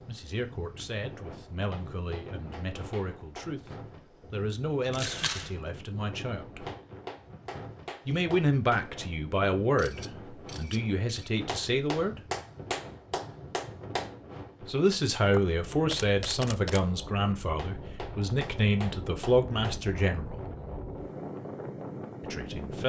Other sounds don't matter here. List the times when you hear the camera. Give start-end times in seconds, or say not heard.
4.9-5.6, 9.8-11.3, 15.3-16.9.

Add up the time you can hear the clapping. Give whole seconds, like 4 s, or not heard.
9 s.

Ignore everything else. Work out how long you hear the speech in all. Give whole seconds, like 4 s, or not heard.
17 s.